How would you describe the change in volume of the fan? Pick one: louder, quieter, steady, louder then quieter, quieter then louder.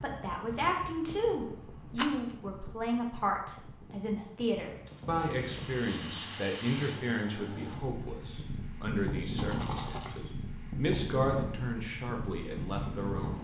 louder.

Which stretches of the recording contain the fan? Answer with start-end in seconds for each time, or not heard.
0.0-13.4.